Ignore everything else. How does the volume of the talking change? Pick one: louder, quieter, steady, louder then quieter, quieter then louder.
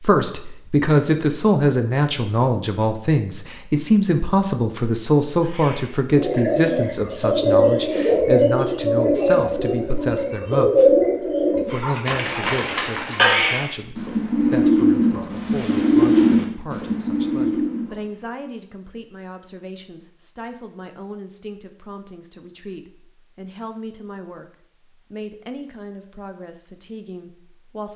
quieter.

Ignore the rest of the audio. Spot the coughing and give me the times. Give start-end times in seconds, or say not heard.
not heard.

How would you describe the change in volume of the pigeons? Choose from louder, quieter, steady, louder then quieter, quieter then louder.
steady.